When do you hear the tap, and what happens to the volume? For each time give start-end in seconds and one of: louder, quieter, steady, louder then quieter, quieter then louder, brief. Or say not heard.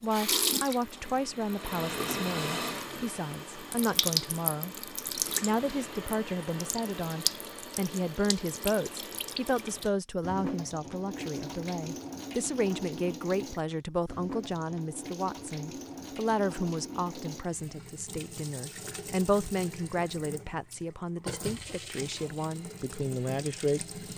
0.1-24.1 quieter.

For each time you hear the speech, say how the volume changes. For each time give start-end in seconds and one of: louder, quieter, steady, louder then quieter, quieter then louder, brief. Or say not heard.
0.0-23.9 steady.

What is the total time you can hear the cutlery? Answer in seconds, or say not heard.
not heard.